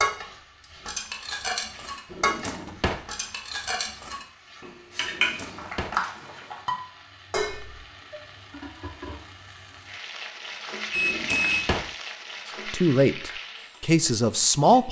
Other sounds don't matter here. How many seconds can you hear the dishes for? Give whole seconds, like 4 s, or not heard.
8 s.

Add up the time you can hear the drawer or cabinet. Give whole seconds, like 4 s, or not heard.
3 s.